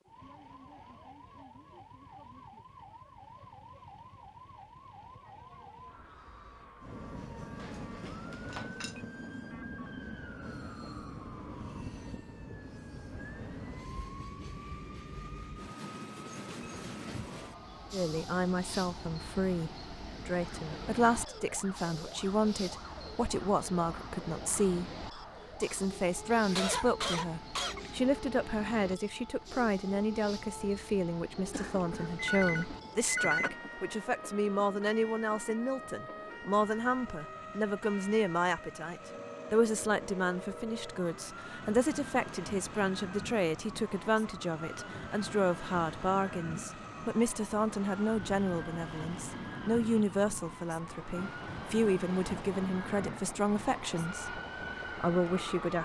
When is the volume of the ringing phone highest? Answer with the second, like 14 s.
33 s.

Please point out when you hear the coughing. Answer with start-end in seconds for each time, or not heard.
26.3-28.0.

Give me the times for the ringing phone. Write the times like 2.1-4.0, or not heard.
7.5-9.1, 31.5-33.5.